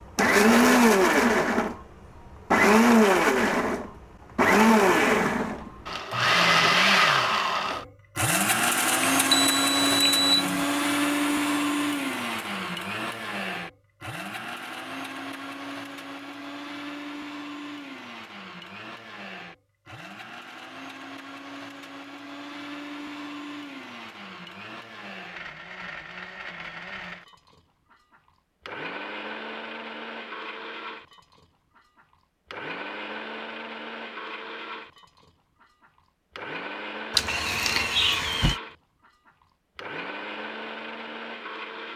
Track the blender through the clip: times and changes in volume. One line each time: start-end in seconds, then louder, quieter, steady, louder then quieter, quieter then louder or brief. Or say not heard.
0.1-41.9 quieter.